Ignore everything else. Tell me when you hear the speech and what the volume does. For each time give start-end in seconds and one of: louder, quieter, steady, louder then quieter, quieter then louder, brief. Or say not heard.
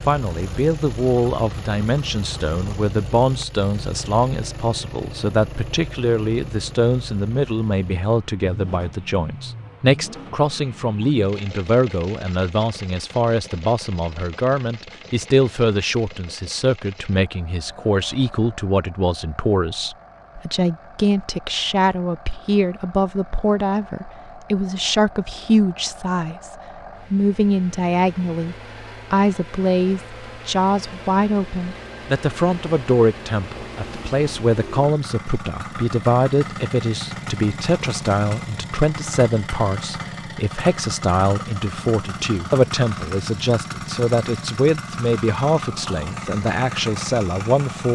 0.1-26.5 steady
27.1-47.9 steady.